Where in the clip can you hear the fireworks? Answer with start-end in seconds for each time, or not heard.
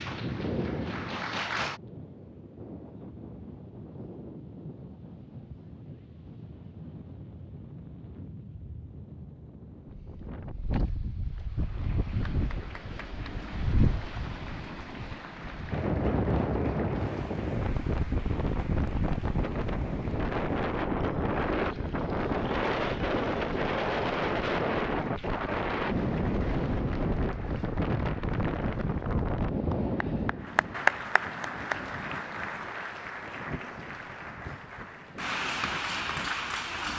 not heard.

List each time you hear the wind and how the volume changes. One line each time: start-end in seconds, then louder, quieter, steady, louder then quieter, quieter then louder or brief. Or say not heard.
0.0-36.9 louder then quieter.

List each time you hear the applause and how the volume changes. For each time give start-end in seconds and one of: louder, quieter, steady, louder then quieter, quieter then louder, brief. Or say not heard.
0.0-1.8 brief
11.6-36.9 louder.